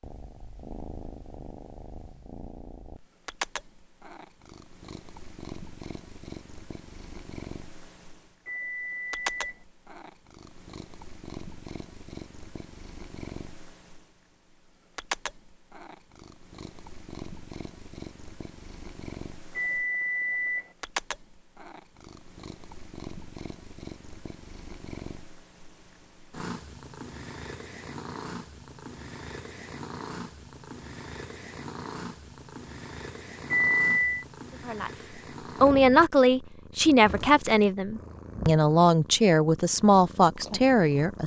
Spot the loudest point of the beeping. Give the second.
34 s.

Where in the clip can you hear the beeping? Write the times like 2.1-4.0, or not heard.
8.4-9.7, 19.6-20.7, 33.5-34.2.